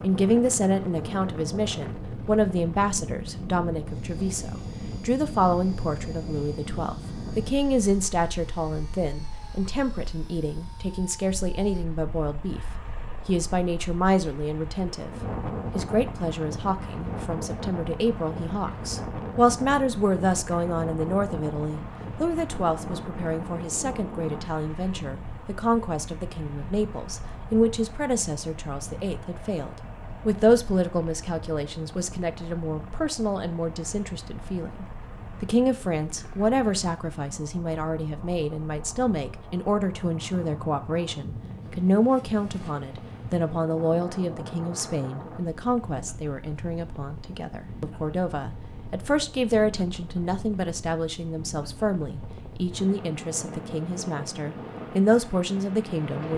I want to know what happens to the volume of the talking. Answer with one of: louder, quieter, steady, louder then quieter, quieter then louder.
steady.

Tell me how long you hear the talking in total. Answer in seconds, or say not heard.
56 s.